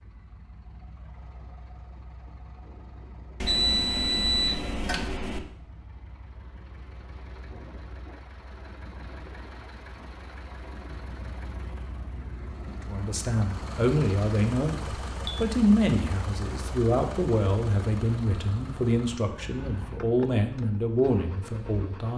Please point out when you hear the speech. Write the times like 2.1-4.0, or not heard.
12.8-22.1.